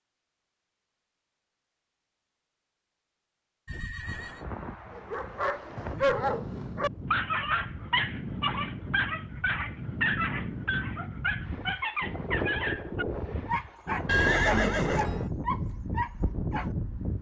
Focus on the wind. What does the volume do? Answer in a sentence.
The volume of the wind goes up.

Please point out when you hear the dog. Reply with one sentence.
You can hear the dog from 5.0 to 16.7 s.